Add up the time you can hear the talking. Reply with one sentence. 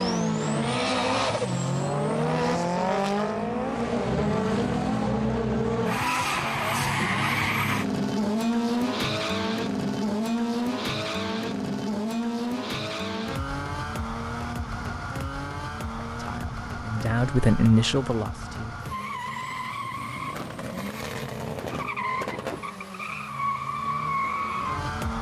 The talking can be heard for 3 seconds in total.